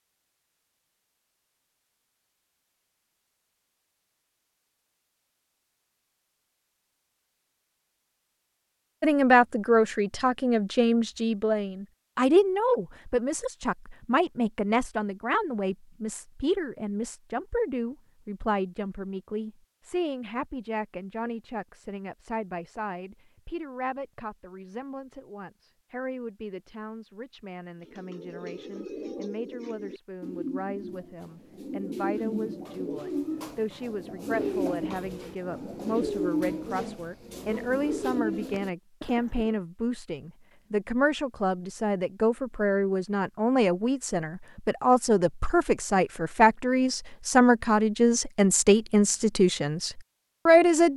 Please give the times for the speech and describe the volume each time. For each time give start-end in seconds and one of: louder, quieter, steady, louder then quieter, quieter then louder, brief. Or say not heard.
9.0-50.9 quieter then louder.